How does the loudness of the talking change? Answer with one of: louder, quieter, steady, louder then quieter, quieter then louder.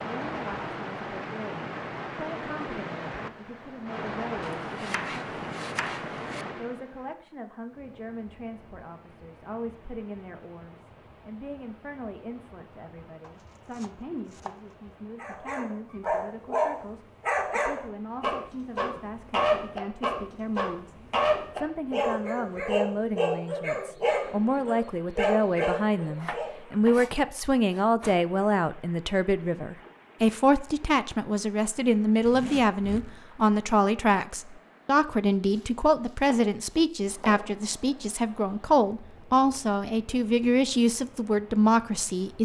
louder.